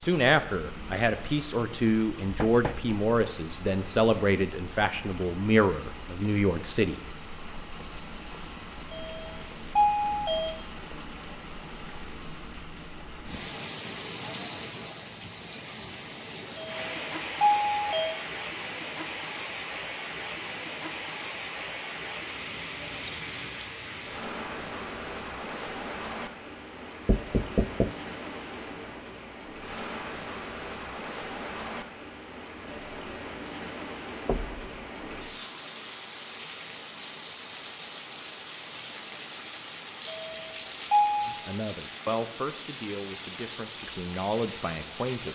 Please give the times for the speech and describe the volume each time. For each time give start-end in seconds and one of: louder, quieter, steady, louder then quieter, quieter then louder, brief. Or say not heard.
0.0-7.0 steady
41.2-45.3 quieter then louder.